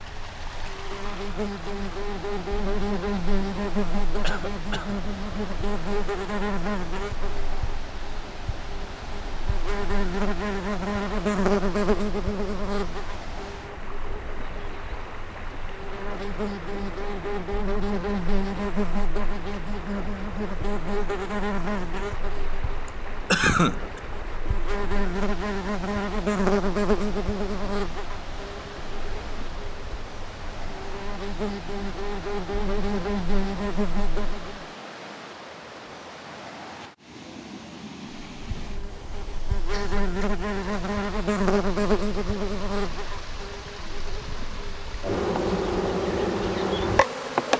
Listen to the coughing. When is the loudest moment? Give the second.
23 s.